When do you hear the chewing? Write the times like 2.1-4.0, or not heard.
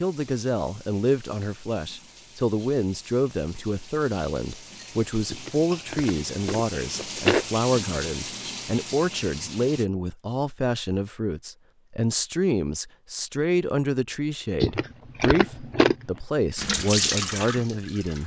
5.3-7.5, 14.6-16.1.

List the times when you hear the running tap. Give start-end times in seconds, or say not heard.
0.0-9.8, 16.6-18.2.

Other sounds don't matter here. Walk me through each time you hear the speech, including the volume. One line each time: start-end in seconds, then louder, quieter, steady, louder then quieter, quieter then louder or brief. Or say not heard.
0.0-18.2 steady.